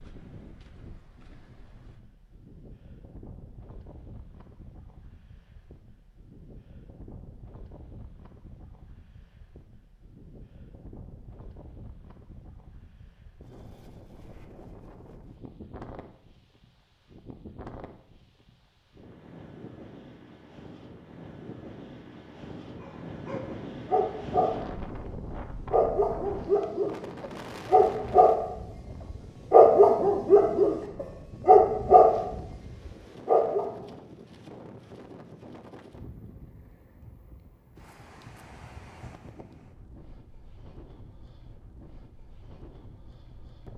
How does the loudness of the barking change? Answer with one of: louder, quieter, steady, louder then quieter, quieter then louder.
louder.